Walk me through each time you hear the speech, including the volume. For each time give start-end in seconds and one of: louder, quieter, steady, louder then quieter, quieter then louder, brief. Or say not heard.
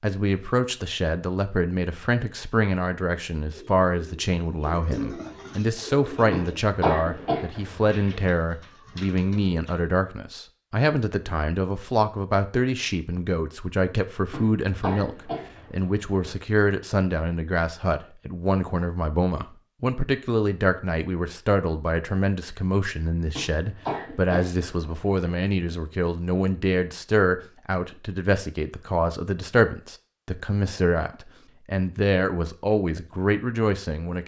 0.0-34.2 steady.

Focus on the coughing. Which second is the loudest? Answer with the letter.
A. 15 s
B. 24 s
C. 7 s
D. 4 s
C.